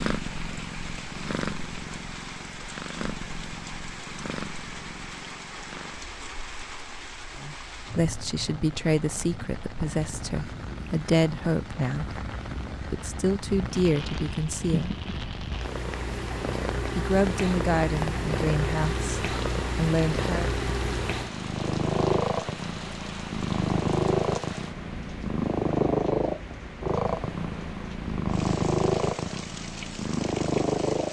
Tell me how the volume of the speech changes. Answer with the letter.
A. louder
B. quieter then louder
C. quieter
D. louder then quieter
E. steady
E.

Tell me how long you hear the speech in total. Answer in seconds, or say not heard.
11 s.